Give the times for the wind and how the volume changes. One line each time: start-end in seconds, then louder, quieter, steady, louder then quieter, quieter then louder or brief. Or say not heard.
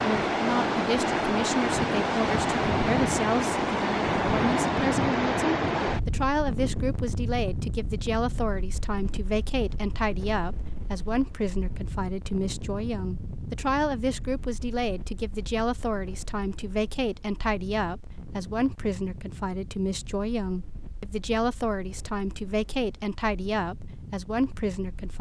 0.0-25.1 quieter.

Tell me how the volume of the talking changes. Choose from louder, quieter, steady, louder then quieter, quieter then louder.
steady.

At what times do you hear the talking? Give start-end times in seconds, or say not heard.
0.0-25.1.